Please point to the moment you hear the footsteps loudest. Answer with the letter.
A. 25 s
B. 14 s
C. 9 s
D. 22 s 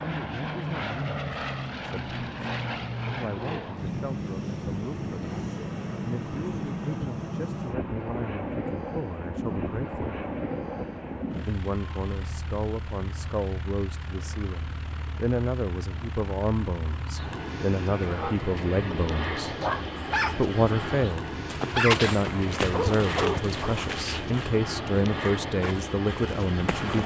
D.